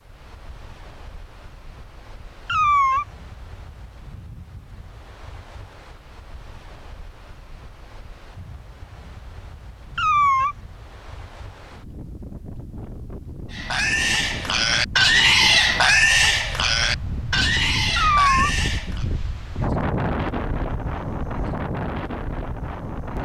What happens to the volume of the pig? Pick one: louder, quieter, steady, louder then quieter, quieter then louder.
louder then quieter.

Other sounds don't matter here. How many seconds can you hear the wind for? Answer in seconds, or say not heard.
23 s.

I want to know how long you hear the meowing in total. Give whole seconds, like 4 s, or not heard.
2 s.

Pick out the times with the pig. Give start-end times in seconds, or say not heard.
13.5-19.1.